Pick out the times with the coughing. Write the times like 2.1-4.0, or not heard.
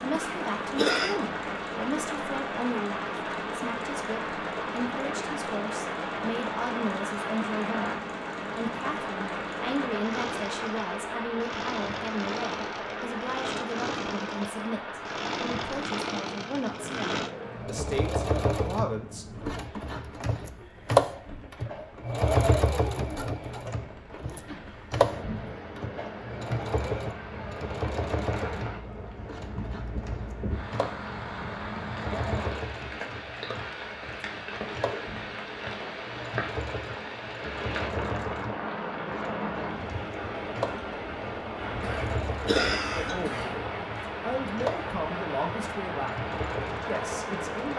0.1-1.2, 41.8-43.5.